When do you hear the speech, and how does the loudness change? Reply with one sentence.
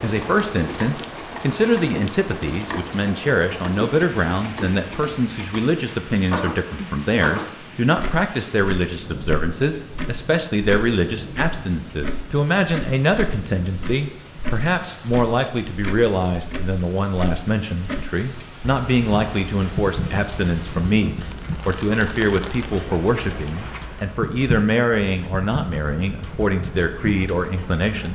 The speech can be heard from 0.0 to 28.1 s, at a steady volume.